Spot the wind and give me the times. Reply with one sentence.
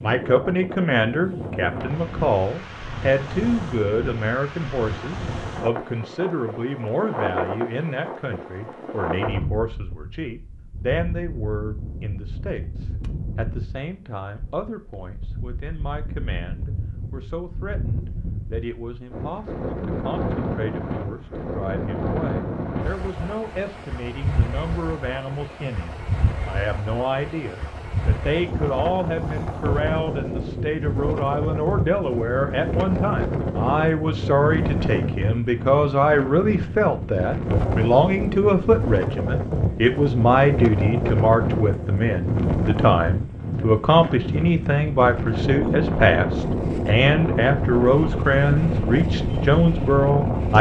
The wind can be heard from 0.0 to 50.5 s.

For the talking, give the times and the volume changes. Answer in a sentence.
You can hear the talking from 0.0 to 50.5 s, getting quieter then louder.